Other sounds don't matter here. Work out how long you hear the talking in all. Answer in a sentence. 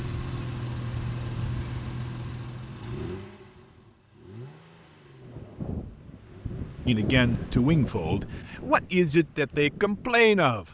The talking can be heard for 4 seconds in total.